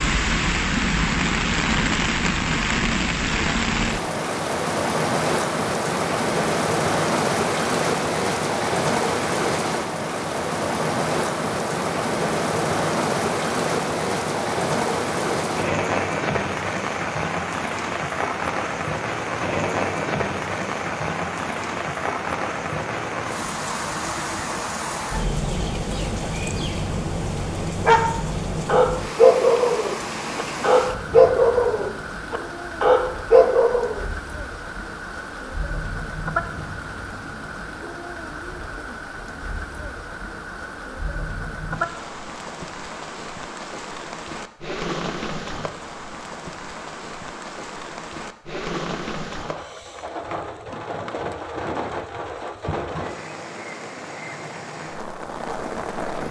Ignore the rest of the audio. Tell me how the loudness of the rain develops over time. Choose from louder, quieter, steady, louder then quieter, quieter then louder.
quieter.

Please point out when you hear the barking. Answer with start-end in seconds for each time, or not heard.
27.9-34.0.